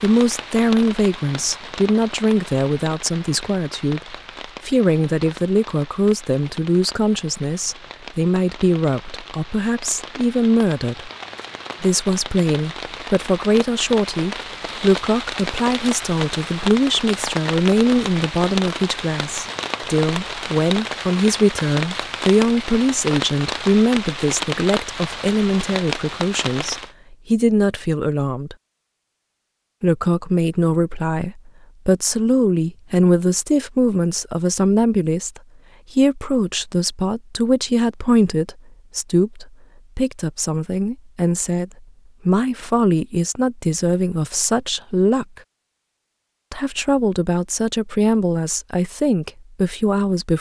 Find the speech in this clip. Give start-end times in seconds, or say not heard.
0.0-4.0, 4.7-11.1, 11.8-28.6, 29.8-45.2, 46.5-50.3.